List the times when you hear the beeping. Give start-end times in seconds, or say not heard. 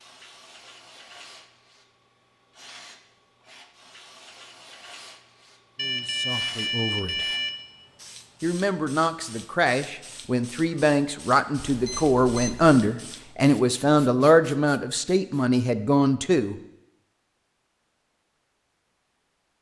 5.8-7.5, 11.6-12.8.